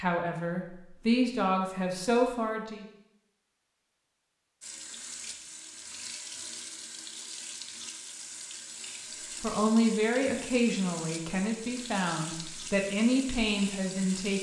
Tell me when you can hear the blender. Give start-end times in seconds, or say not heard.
not heard.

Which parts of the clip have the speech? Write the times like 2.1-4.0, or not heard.
0.0-2.9, 9.4-14.3.